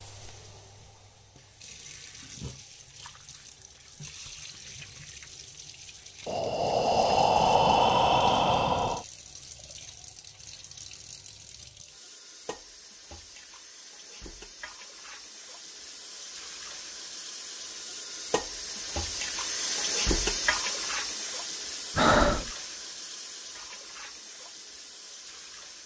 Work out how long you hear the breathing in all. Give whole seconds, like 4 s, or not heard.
3 s.